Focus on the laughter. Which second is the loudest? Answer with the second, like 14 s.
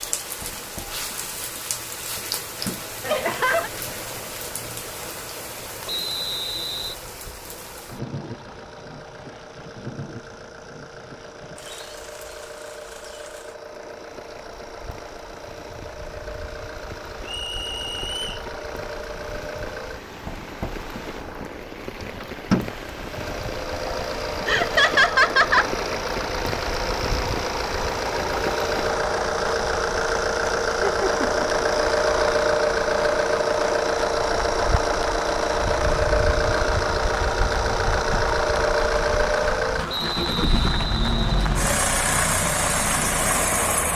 25 s.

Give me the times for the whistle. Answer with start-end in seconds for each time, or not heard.
5.8-7.0, 17.2-18.4, 39.9-41.6.